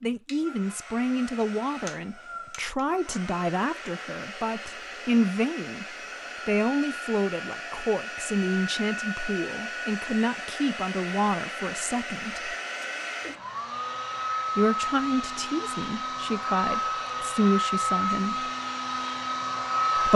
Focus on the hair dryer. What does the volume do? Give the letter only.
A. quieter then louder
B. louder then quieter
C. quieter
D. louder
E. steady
D.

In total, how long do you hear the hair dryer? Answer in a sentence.
You can hear the hair dryer for 20 seconds altogether.